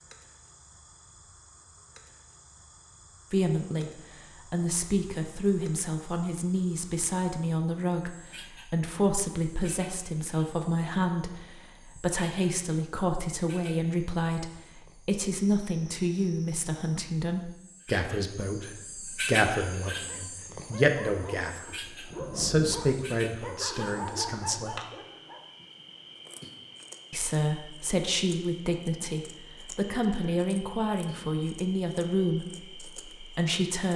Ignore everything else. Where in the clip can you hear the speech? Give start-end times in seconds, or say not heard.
3.3-3.9, 4.5-24.8, 27.1-33.9.